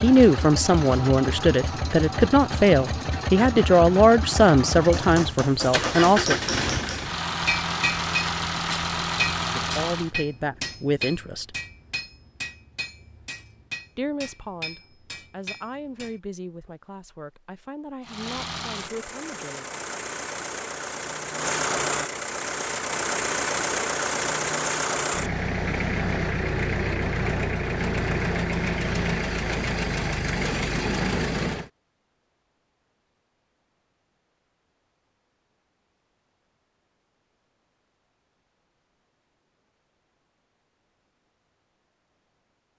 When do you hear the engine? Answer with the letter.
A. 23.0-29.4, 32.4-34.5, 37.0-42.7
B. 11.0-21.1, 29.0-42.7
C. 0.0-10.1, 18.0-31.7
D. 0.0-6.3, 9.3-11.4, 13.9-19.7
C.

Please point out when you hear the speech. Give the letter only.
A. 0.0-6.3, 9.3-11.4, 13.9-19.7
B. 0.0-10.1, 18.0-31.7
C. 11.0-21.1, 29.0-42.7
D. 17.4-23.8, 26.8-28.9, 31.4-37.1
A.